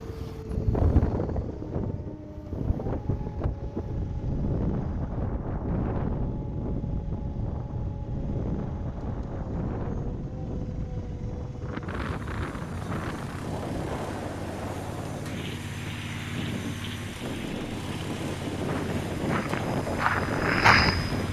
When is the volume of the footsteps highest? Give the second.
21 s.